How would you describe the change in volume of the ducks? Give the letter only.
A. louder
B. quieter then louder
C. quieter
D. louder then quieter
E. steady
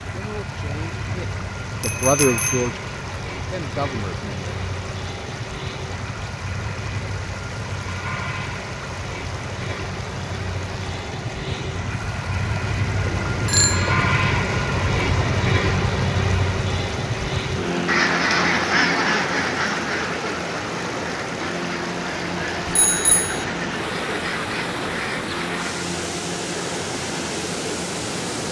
C.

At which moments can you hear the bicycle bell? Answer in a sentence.
The bicycle bell can be heard from 1.8 to 2.7 s, from 13.1 to 14.2 s and from 22.6 to 23.4 s.